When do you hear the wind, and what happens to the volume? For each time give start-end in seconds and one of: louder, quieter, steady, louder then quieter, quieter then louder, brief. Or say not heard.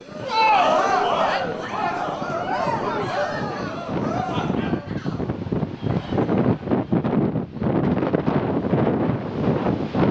0.0-10.0 louder.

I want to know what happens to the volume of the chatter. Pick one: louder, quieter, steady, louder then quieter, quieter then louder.
quieter.